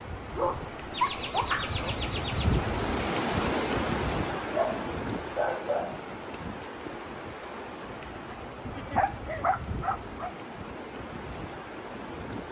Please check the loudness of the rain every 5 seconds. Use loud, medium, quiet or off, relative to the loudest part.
loud, medium, medium.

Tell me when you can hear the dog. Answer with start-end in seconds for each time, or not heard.
0.3-1.9, 4.5-6.0, 8.7-10.3.